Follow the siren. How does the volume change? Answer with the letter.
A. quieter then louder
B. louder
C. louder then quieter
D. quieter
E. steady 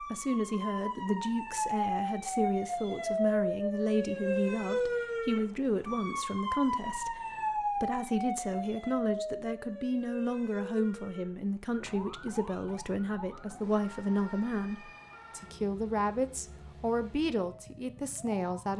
D.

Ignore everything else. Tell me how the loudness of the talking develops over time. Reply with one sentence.
The loudness of the talking stays about the same.